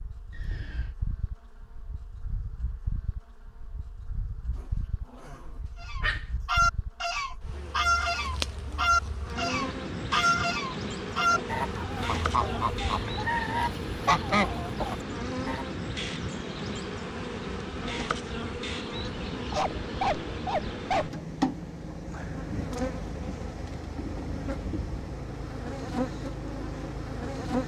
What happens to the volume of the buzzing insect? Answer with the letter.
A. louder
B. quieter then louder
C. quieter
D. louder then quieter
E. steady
A.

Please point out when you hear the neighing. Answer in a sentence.
The neighing can be heard from 0.3 to 0.9 s.